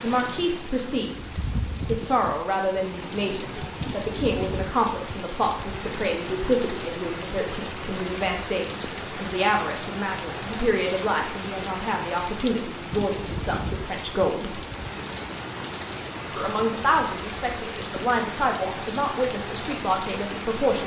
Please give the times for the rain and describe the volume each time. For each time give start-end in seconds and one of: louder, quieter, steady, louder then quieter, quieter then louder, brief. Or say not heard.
0.0-20.8 steady.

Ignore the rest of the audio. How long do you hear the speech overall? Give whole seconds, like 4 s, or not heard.
19 s.